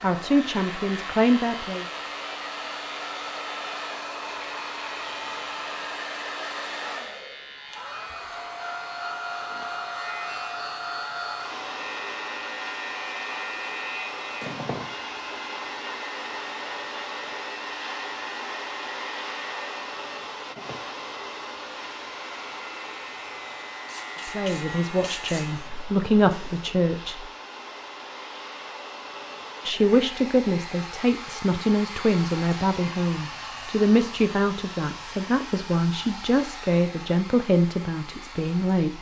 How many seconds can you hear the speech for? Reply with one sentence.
The speech can be heard for 14 seconds in total.